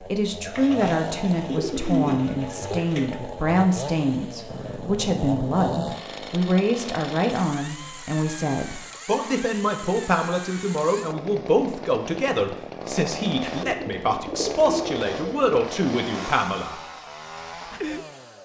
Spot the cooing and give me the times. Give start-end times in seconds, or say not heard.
0.5-3.2, 13.6-15.6.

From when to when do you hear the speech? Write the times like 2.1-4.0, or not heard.
0.0-16.8.